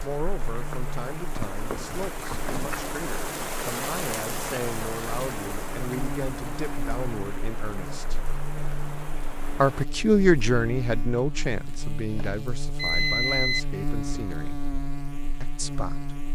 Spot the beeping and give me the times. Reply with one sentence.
You can hear the beeping from 1.9 to 2.8 s and from 11.6 to 13.6 s.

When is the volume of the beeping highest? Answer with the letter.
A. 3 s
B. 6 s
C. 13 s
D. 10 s
C.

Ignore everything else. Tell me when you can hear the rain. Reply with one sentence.
The rain can be heard from 0.0 to 9.8 s.